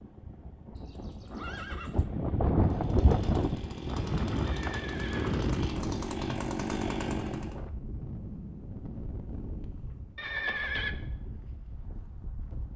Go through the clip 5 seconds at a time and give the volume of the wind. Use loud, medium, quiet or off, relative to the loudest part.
loud, medium, quiet.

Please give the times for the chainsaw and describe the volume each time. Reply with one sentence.
The chainsaw can be heard from 2.6 to 7.5 s, getting louder.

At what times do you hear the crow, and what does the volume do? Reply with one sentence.
You can't hear the crow here.